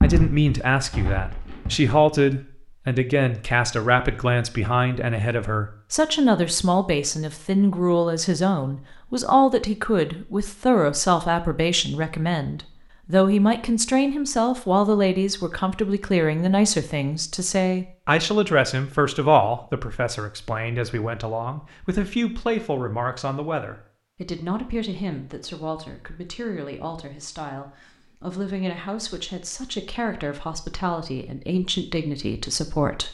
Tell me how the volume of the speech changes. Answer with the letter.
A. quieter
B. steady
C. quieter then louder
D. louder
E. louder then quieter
A.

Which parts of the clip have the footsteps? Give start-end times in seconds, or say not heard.
0.0-1.8.